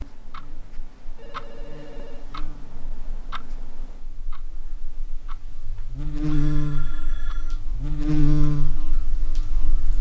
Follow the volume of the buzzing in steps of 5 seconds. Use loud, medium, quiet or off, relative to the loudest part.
quiet, loud.